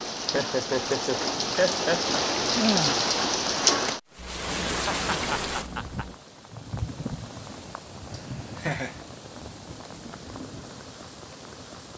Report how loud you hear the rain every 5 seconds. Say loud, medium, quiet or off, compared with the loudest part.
loud, medium, quiet.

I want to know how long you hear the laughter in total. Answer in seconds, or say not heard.
5 s.